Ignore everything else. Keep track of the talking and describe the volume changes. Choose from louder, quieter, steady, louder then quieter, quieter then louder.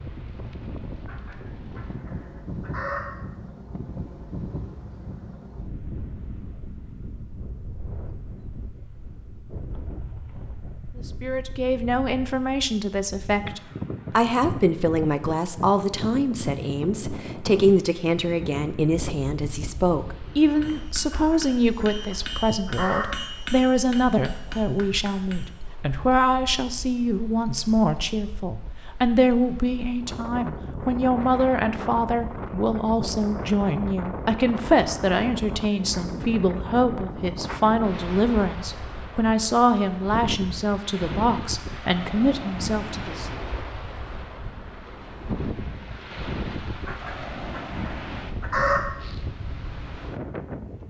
steady.